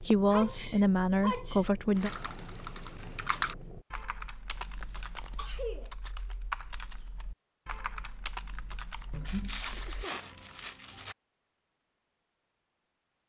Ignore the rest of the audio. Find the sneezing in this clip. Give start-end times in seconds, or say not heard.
0.3-1.6, 4.5-5.9, 9.8-10.2.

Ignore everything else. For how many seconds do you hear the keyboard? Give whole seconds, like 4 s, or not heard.
8 s.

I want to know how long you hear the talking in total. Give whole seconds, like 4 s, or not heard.
2 s.